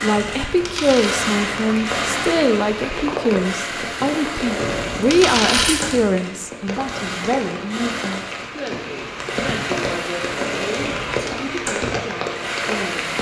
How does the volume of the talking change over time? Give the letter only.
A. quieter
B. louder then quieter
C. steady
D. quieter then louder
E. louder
A.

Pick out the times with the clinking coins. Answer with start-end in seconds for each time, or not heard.
0.1-1.2, 4.6-6.0, 10.8-11.2.